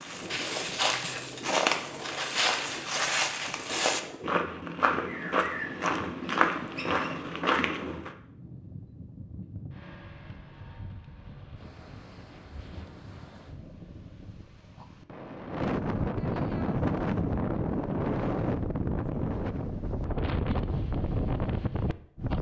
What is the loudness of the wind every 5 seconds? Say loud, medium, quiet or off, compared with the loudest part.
quiet, quiet, quiet, loud, loud.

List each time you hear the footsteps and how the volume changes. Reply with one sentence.
The footsteps can be heard from 0.0 to 8.1 s, at a steady volume.